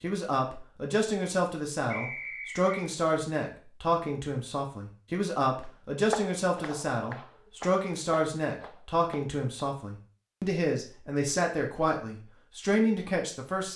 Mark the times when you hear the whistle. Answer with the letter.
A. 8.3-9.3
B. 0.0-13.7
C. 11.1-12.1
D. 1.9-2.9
D.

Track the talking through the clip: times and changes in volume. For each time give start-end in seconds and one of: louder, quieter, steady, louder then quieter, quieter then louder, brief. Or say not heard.
0.0-13.7 steady.